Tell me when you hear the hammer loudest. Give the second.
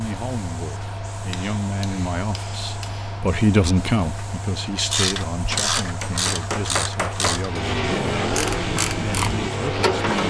7 s.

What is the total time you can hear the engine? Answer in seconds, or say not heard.
3 s.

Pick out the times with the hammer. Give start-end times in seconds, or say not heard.
1.3-3.2, 5.5-7.5.